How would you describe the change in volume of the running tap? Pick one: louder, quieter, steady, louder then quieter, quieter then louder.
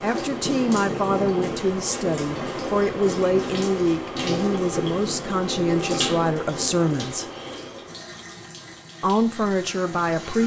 quieter.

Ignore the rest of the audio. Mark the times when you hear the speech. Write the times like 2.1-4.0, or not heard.
0.0-7.2, 9.0-10.4.